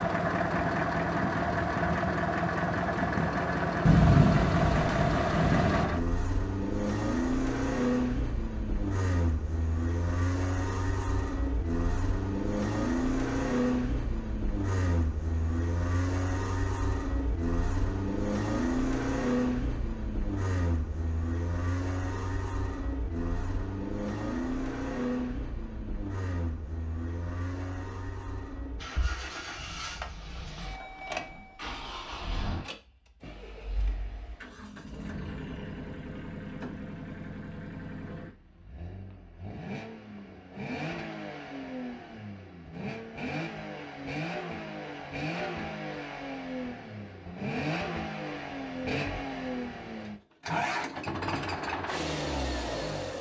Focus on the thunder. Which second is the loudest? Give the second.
4 s.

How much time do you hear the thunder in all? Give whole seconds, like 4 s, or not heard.
2 s.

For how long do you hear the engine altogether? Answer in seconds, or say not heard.
53 s.